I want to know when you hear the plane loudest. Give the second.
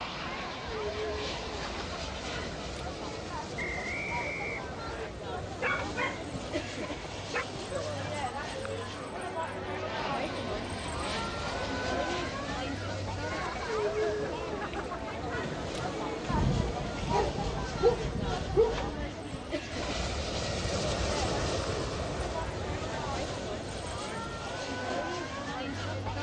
21 s.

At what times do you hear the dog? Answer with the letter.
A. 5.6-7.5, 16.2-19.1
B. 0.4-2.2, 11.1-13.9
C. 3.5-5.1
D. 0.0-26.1
A.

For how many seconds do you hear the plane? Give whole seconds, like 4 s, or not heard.
26 s.